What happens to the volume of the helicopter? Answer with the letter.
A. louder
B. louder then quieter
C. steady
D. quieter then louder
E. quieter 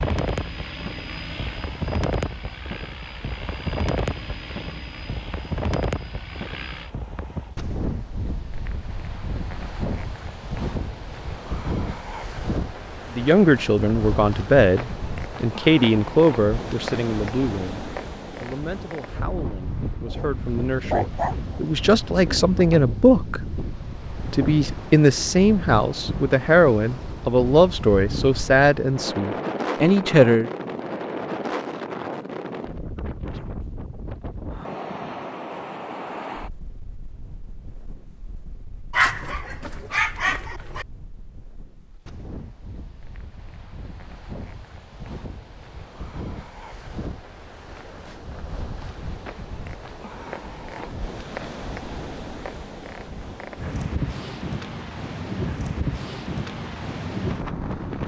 E.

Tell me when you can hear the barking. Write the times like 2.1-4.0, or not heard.
20.1-21.8, 38.9-40.9.